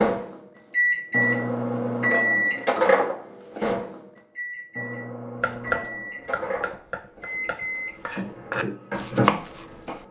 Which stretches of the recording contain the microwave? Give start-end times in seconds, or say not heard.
0.0-10.0.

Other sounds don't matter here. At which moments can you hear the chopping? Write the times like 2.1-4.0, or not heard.
5.4-10.0.